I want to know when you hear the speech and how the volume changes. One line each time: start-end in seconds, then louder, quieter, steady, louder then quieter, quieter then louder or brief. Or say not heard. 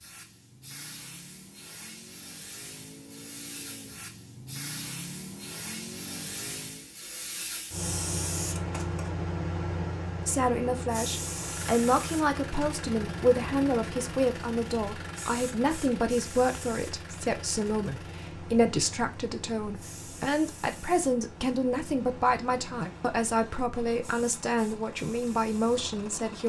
10.2-26.4 steady.